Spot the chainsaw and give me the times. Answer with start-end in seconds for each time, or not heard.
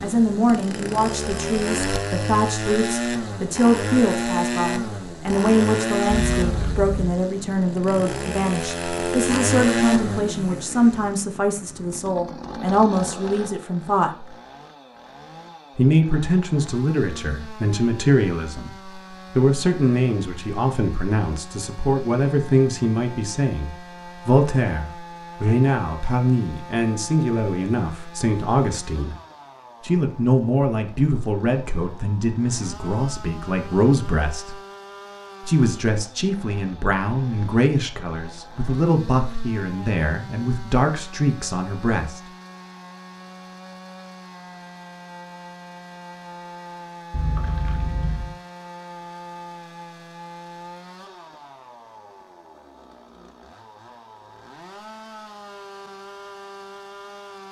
0.0-57.4.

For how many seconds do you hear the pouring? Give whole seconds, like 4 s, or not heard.
2 s.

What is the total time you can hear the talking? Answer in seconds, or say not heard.
39 s.